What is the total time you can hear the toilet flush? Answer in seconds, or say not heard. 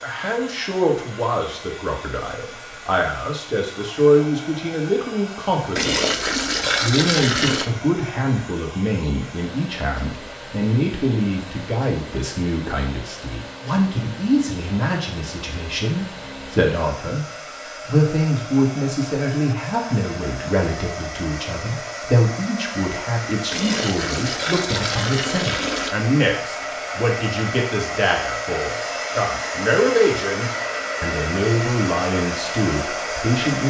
4 s.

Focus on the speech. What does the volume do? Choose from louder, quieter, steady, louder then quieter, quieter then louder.
steady.